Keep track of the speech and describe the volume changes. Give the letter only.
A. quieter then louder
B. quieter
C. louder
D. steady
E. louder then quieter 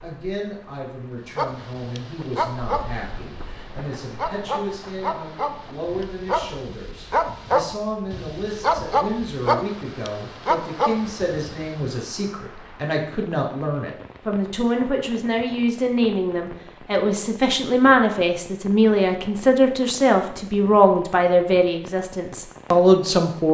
C.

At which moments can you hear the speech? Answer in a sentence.
You can hear the speech from 0.0 to 23.4 s.